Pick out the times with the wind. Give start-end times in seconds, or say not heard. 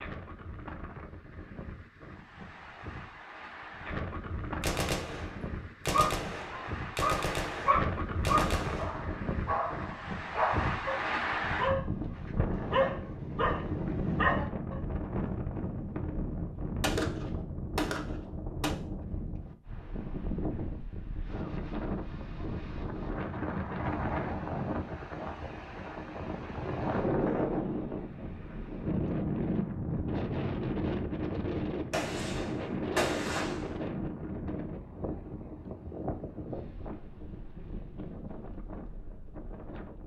0.0-40.0.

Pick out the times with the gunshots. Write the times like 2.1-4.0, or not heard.
4.6-9.1, 16.8-18.8, 31.9-33.6.